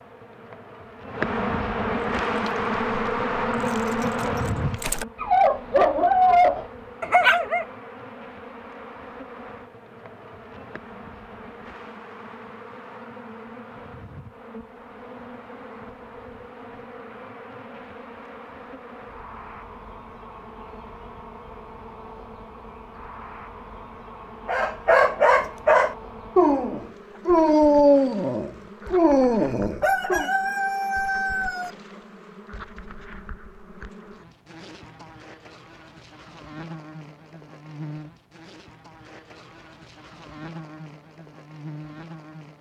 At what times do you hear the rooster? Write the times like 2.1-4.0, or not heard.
29.8-31.7.